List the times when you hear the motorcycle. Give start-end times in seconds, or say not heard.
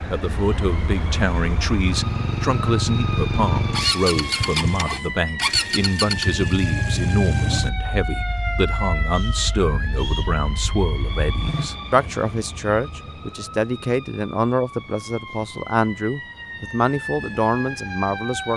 0.0-11.7.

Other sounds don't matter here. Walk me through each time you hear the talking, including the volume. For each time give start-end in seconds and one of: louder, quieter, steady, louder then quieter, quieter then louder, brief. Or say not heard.
0.1-18.5 steady.